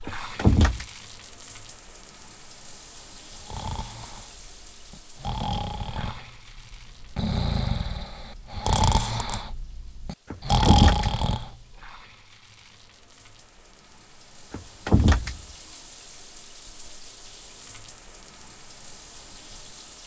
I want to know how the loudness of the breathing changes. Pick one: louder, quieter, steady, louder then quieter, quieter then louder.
louder.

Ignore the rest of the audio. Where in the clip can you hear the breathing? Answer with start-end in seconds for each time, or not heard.
3.4-11.8.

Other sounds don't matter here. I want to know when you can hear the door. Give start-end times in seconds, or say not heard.
0.1-0.8, 10.3-11.2, 14.5-15.4.